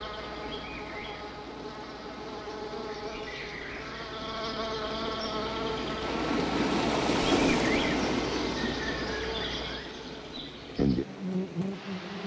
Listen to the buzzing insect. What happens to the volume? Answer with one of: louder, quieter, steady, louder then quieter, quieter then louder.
louder.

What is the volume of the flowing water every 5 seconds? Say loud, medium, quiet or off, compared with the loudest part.
quiet, loud, quiet.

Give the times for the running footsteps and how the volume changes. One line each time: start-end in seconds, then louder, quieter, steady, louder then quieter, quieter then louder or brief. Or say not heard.
not heard.